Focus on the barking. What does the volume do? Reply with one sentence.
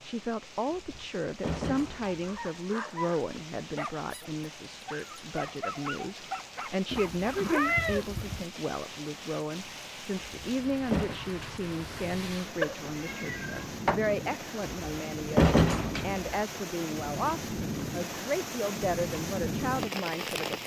The volume of the barking goes down, then up.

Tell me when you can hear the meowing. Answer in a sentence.
You can hear the meowing from 6.9 to 8.4 s and from 12.6 to 14.0 s.